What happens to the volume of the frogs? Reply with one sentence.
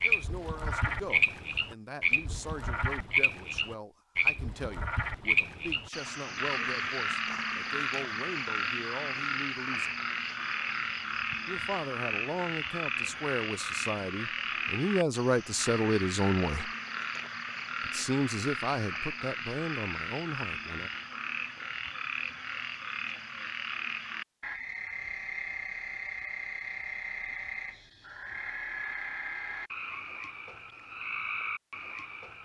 The loudness of the frogs goes down.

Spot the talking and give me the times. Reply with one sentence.
You can hear the talking from 0.0 to 9.9 s, from 11.4 to 16.7 s and from 17.9 to 20.9 s.